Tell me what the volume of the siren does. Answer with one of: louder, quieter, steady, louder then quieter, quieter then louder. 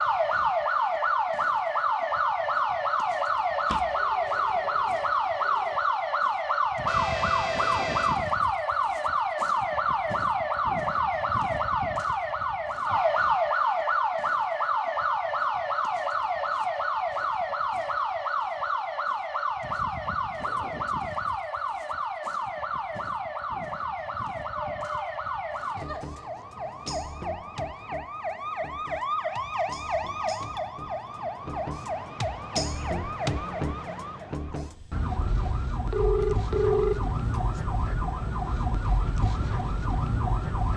quieter.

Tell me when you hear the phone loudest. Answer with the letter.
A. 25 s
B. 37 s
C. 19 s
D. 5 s
B.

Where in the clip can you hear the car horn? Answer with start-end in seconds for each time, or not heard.
6.8-8.2.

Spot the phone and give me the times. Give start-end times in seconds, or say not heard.
3.6-5.8, 24.5-25.1, 35.9-37.6.